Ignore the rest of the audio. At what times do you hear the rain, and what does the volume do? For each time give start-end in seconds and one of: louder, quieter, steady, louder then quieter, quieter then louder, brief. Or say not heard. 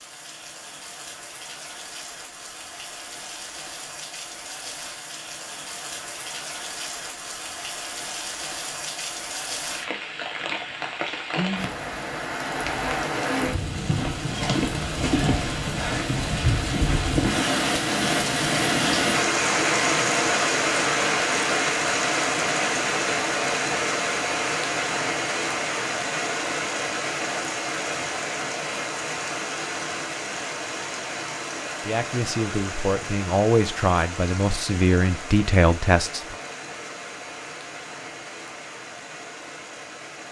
0.0-40.2 louder then quieter.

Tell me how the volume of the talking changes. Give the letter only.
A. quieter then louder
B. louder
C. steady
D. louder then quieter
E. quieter
B.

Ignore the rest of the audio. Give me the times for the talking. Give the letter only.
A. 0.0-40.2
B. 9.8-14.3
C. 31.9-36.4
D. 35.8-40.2
C.